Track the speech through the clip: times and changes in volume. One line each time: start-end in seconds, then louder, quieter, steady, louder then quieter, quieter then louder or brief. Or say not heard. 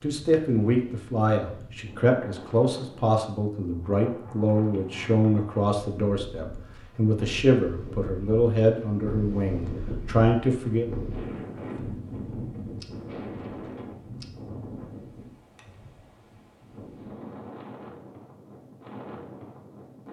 0.0-10.8 steady.